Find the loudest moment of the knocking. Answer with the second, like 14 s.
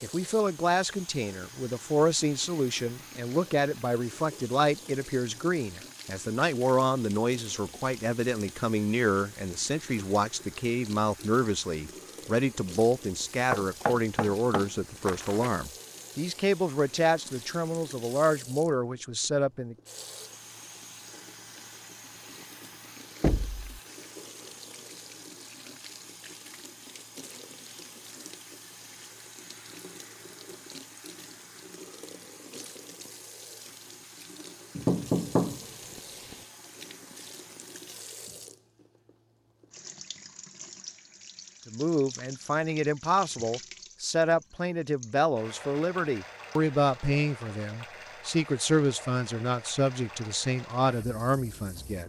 35 s.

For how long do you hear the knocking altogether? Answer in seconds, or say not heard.
4 s.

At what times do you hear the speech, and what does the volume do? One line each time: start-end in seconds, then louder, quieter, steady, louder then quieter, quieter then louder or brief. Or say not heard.
0.0-19.8 steady
41.6-52.0 steady.